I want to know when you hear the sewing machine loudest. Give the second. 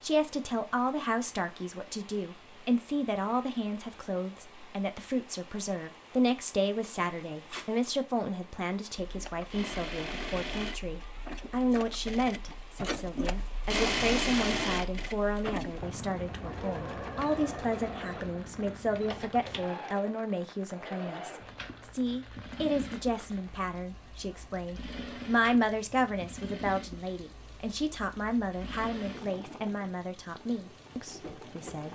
14 s.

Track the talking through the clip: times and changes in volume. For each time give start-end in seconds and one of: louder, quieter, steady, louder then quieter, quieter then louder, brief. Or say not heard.
0.0-31.9 steady.